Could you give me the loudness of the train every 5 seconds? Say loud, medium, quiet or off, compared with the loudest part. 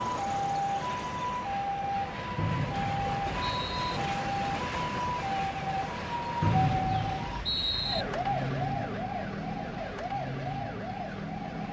loud, loud, medium.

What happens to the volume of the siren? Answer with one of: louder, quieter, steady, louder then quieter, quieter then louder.
steady.